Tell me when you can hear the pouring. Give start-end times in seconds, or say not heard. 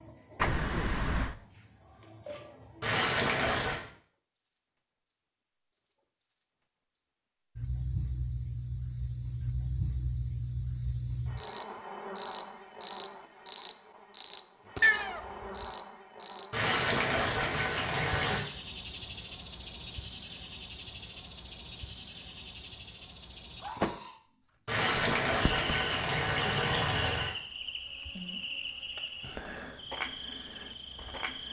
2.8-3.8, 16.5-18.4, 24.6-27.4.